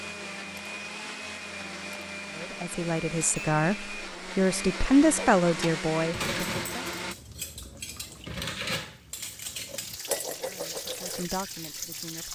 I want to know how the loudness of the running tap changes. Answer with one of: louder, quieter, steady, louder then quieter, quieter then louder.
louder.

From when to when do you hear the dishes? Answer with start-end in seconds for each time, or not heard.
5.5-11.2.